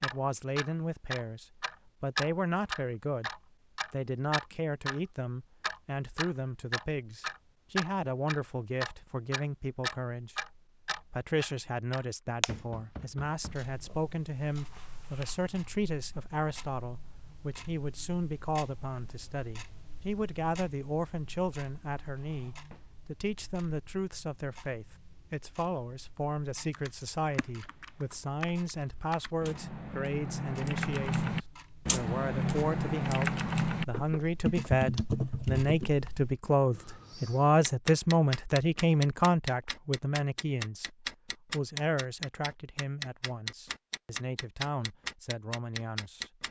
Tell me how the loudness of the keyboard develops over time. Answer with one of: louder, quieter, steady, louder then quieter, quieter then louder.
louder.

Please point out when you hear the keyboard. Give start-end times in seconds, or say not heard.
26.7-35.9.